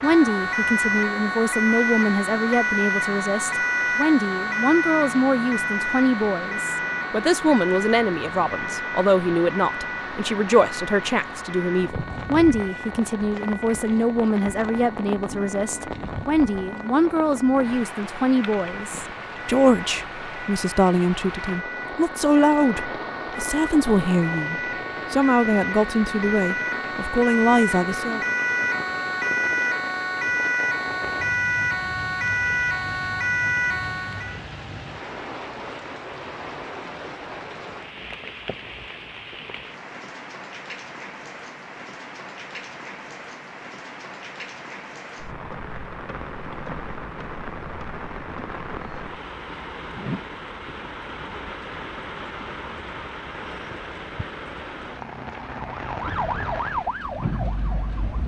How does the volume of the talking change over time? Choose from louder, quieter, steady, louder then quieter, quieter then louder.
steady.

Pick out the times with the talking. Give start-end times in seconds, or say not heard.
0.0-28.2.